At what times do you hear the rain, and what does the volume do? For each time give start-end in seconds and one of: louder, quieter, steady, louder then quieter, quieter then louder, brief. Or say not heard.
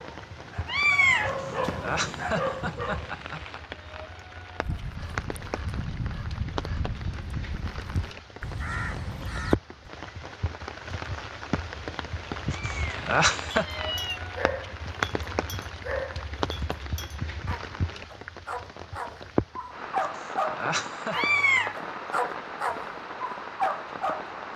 0.0-24.5 louder.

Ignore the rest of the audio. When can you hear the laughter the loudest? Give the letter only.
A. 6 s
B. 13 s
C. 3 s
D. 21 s
B.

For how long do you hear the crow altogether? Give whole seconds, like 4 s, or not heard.
5 s.